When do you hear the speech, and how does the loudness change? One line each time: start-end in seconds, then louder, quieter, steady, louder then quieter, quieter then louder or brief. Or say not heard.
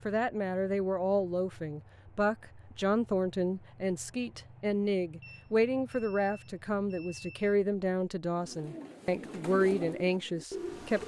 0.1-11.0 steady.